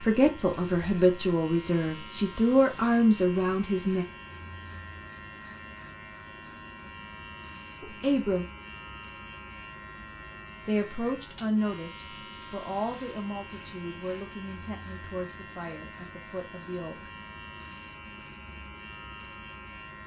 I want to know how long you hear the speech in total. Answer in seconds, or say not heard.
11 s.